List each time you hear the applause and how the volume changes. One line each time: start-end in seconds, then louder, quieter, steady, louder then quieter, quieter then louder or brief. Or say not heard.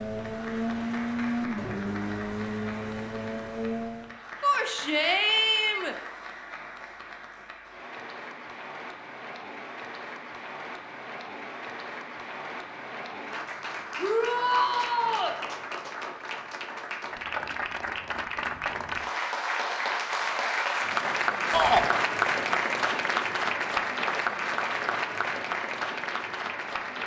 0.1-27.0 louder.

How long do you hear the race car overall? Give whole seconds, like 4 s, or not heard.
4 s.